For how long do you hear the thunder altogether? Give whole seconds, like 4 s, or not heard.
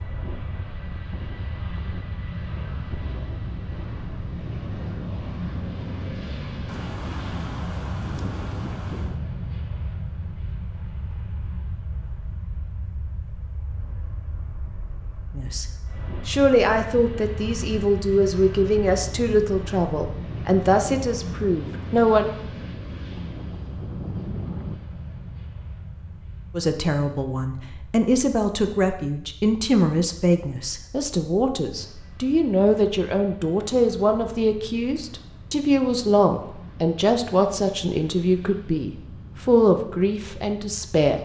4 s.